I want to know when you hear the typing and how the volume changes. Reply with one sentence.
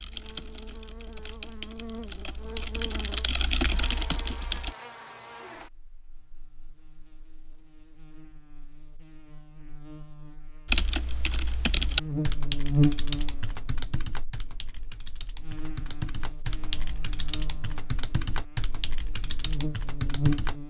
You can hear the typing from 0.0 to 4.8 s, getting louder; and from 10.7 to 20.6 s, getting quieter.